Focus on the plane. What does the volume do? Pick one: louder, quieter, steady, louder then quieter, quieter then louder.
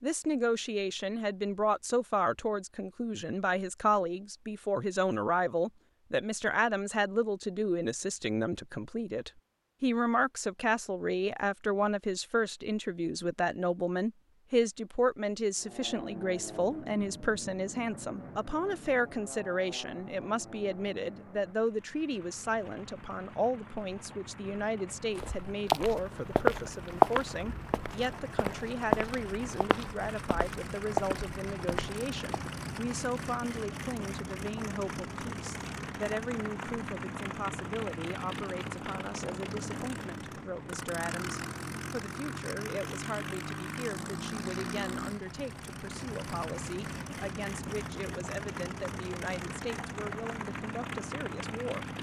louder.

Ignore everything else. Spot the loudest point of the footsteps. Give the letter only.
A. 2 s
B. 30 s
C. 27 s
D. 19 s
C.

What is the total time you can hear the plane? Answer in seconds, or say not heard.
36 s.